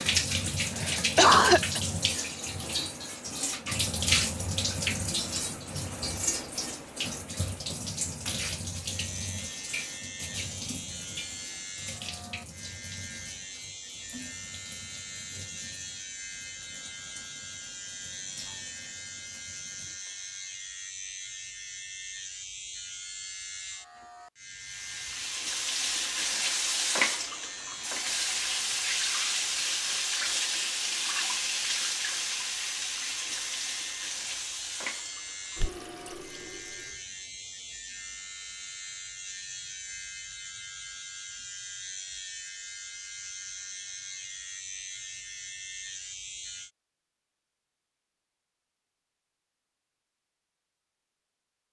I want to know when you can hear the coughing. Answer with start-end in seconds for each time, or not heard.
0.8-1.8.